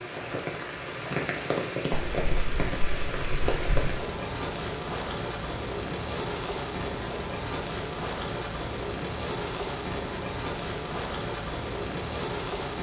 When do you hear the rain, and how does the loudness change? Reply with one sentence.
You can hear the rain from 0.0 to 12.7 s, at a steady volume.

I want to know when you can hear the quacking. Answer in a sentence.
The quacking can be heard from 1.9 to 4.0 s.